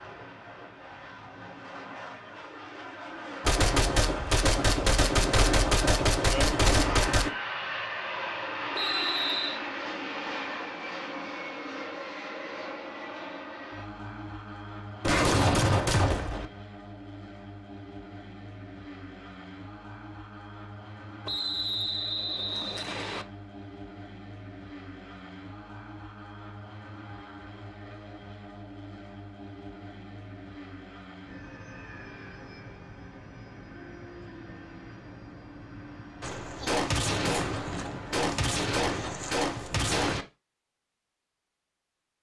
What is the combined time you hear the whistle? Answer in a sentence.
You can hear the whistle for 3 seconds altogether.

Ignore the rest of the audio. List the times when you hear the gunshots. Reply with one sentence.
The gunshots can be heard from 3.4 to 7.3 s, from 15.0 to 16.4 s and from 36.2 to 40.2 s.